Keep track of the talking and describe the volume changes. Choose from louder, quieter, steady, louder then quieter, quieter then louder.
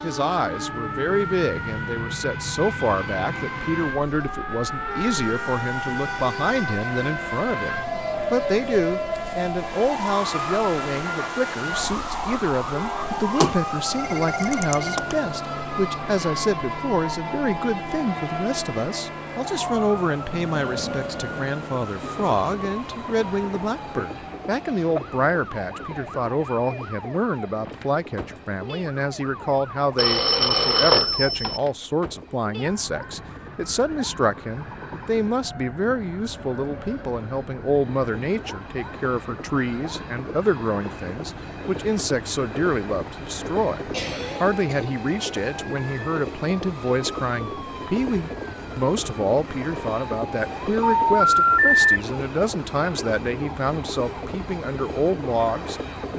steady.